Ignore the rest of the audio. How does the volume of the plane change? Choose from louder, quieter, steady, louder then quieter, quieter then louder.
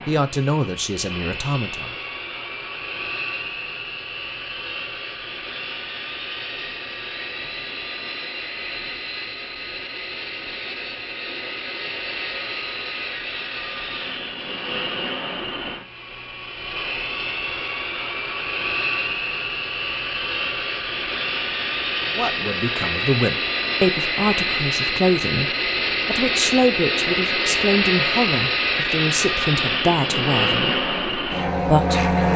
louder.